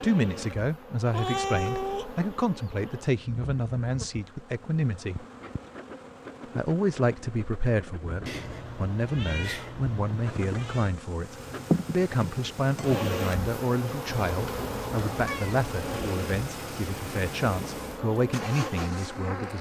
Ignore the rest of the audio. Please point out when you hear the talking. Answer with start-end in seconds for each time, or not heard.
0.0-5.2, 6.5-19.5.